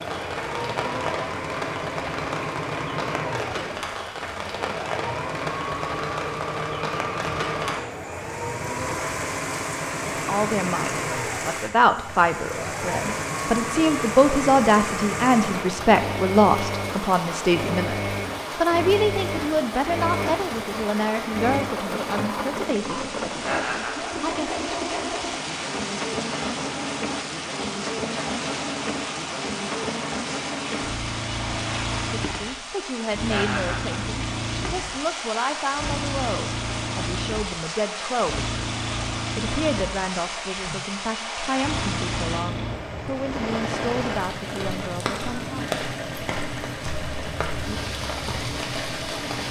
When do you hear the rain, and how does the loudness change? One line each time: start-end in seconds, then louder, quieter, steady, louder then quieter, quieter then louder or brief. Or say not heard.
0.0-49.4 steady.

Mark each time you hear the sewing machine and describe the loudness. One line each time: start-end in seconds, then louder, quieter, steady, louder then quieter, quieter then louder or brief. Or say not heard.
0.0-49.4 steady.